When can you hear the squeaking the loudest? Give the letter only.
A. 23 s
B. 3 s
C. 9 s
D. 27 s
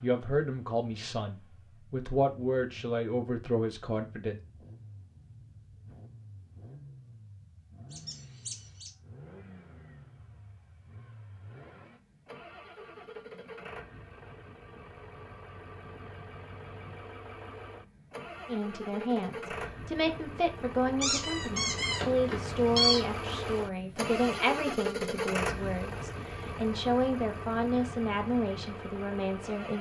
A.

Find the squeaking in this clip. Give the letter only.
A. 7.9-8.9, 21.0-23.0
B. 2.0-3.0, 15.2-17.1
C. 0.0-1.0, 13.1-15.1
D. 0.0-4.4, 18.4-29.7
A.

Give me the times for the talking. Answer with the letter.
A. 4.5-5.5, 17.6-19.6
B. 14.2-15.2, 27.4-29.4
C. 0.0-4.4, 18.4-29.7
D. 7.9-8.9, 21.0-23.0
C.